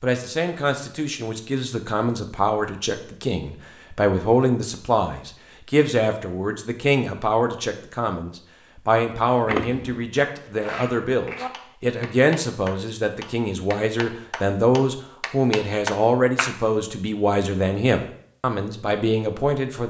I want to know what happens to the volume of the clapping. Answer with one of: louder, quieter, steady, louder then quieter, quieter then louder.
louder.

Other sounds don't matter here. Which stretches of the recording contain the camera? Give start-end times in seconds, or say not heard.
9.4-10.1.